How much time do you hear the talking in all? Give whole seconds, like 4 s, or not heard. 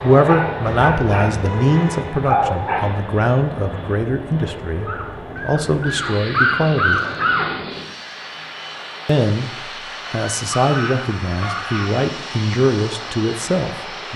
12 s.